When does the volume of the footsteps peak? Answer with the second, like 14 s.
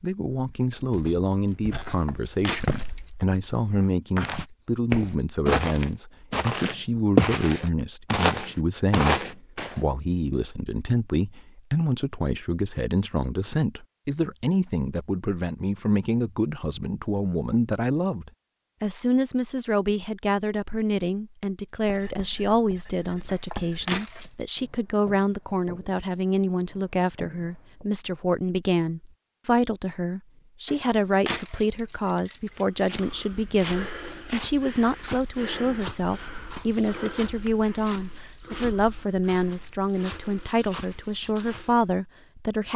7 s.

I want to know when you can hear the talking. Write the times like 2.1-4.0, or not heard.
0.0-42.7.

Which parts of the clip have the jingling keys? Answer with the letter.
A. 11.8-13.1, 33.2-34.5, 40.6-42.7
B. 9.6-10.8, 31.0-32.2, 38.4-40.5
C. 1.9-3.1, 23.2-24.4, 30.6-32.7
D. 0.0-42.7
C.